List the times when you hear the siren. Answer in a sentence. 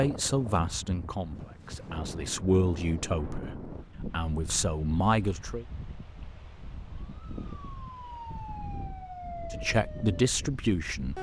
You can hear the siren from 7.2 to 11.1 s.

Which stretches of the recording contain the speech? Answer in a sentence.
The speech can be heard from 0.0 to 5.7 s and from 9.5 to 11.1 s.